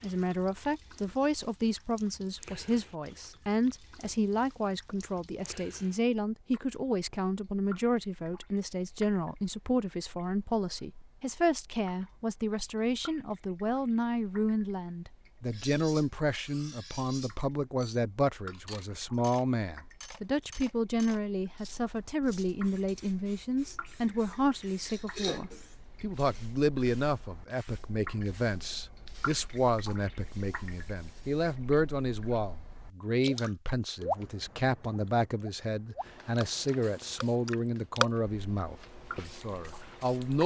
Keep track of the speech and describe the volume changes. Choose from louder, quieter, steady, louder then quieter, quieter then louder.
steady.